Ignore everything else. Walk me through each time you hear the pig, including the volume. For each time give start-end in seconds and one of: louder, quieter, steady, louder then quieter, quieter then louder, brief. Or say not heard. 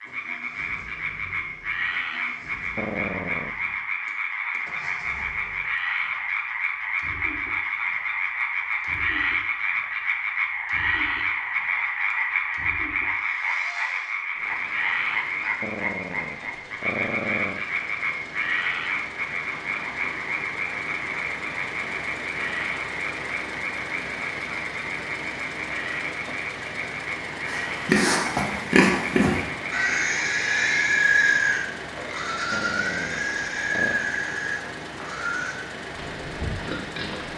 27.4-37.3 quieter.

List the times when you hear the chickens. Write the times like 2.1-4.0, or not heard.
not heard.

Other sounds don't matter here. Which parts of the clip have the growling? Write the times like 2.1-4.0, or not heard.
2.8-3.5, 15.6-17.6, 32.5-34.1.